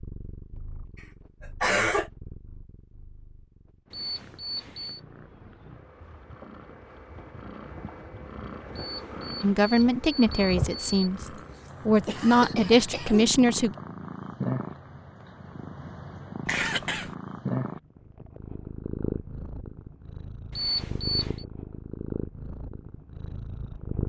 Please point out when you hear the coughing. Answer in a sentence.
You can hear the coughing from 1.0 to 2.1 s, from 10.8 to 13.4 s and from 16.4 to 17.1 s.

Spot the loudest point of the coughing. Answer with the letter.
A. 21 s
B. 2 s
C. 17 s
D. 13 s
B.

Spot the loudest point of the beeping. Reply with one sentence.
The volume of the beeping peaks at 21 seconds.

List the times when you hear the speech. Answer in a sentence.
The speech can be heard from 9.4 to 11.2 s and from 11.8 to 13.8 s.